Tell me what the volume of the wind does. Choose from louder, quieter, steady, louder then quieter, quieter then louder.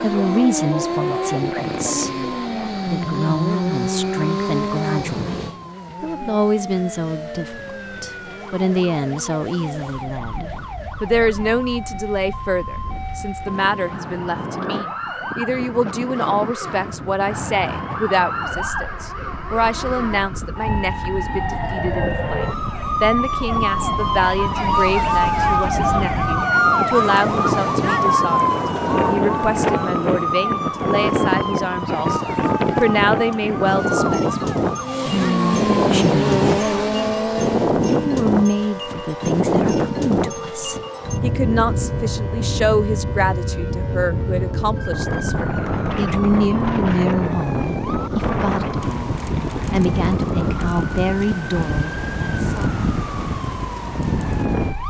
louder.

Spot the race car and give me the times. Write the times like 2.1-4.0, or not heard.
0.0-10.2, 34.8-37.8.